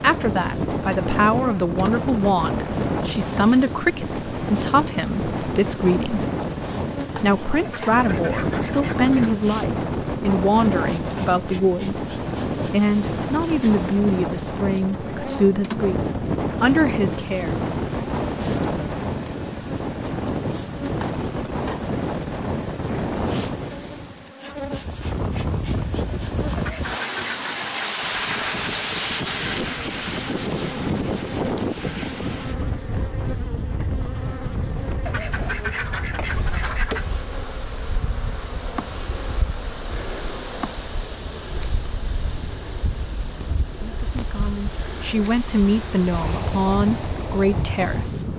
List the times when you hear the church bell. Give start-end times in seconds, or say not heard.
not heard.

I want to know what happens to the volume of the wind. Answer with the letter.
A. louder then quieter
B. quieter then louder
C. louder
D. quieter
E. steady
D.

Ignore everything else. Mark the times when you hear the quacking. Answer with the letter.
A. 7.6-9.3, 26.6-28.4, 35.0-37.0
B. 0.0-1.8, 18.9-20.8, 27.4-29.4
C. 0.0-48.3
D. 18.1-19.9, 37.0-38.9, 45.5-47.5
A.